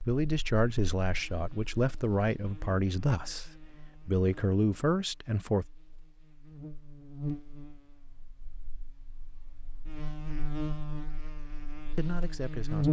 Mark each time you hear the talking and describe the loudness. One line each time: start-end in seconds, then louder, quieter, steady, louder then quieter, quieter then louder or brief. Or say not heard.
0.1-5.7 steady
11.9-12.8 brief.